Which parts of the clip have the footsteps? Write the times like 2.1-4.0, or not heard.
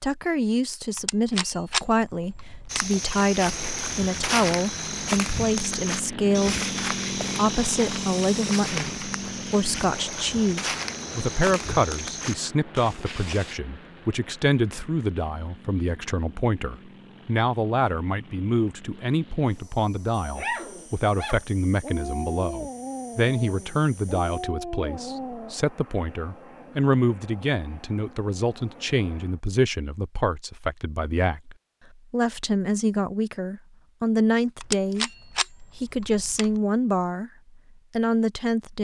2.7-13.6.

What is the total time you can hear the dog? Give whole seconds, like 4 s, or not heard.
5 s.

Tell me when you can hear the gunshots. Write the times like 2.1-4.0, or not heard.
0.9-3.0, 34.6-36.5.